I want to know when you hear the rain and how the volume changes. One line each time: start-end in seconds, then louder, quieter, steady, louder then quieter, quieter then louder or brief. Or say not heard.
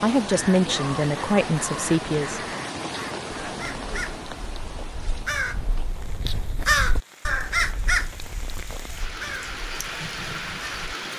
0.0-11.1 quieter then louder.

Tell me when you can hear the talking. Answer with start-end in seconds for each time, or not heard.
0.0-2.5.